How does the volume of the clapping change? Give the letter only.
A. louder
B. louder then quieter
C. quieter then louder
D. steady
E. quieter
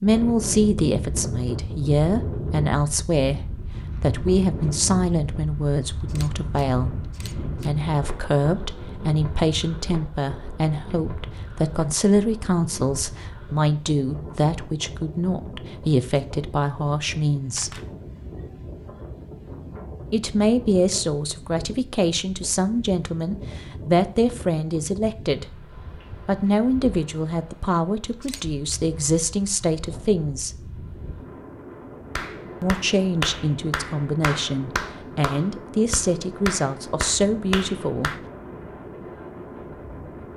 D.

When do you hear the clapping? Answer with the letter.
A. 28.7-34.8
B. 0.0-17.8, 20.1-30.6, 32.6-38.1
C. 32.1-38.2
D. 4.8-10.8
C.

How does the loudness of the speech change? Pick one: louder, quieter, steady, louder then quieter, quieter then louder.
steady.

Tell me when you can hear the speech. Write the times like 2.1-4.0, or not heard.
0.0-17.8, 20.1-30.6, 32.6-38.1.